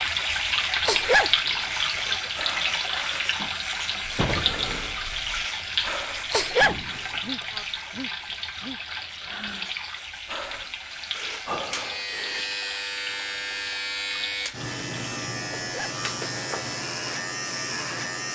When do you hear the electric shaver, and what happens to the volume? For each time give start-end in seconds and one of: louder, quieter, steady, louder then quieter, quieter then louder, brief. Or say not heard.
0.0-18.3 quieter then louder.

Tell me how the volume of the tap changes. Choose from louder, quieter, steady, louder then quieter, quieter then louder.
quieter.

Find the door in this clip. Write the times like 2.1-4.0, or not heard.
3.4-4.5.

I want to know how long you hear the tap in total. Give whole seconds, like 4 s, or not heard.
15 s.